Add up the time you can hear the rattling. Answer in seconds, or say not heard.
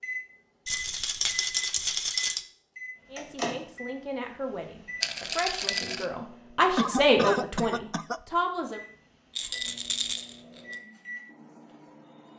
4 s.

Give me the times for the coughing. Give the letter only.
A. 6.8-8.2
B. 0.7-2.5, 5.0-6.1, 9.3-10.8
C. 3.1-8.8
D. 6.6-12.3
A.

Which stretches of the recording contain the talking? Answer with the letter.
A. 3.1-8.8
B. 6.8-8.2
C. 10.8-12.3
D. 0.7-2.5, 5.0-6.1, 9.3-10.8
A.